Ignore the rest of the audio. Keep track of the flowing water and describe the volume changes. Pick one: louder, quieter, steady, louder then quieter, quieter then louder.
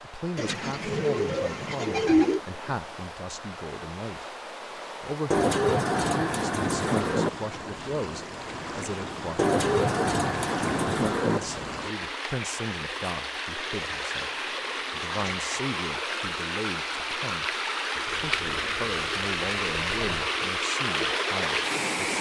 louder.